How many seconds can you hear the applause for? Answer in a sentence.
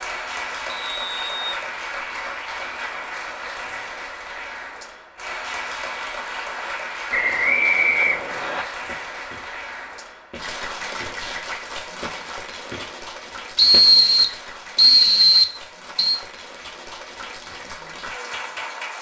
The applause can be heard for 19 seconds in total.